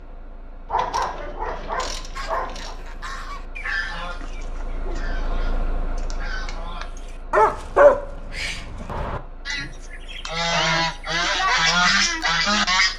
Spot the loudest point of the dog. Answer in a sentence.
The loudest moment of the dog is at 8 seconds.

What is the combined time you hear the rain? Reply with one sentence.
The rain can't be heard in this clip.